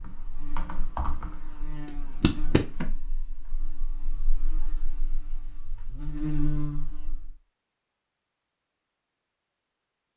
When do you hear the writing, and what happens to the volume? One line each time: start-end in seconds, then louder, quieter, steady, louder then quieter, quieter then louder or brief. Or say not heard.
not heard.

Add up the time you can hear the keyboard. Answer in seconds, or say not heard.
3 s.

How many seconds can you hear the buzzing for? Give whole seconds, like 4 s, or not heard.
7 s.